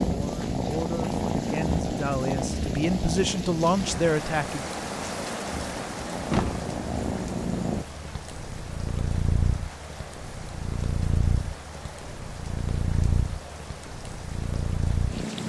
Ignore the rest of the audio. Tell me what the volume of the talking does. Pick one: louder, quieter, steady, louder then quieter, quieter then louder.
louder.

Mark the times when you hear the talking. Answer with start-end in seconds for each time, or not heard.
0.0-4.7.